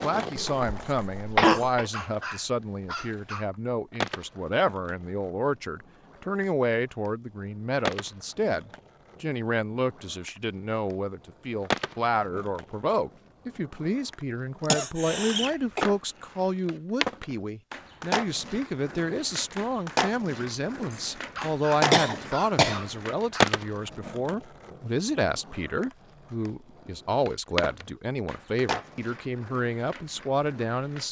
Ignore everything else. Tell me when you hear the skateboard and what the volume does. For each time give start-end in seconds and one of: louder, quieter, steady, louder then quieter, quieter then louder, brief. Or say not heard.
0.0-31.0 louder then quieter.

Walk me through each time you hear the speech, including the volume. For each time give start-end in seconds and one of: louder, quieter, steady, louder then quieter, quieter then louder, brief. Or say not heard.
0.0-31.0 steady.